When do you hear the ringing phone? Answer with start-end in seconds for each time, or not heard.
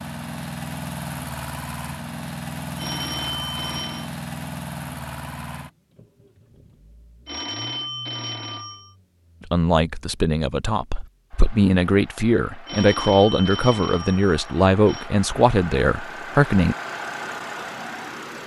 2.8-4.1, 7.2-8.9, 12.7-15.1.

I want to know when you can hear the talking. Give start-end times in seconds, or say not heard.
9.5-16.8.